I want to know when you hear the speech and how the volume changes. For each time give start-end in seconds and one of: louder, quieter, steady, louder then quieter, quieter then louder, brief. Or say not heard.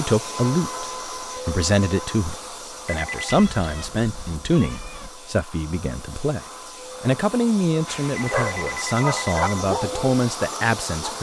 0.0-11.1 steady.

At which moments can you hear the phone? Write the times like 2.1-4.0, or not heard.
2.9-3.4, 8.2-9.6.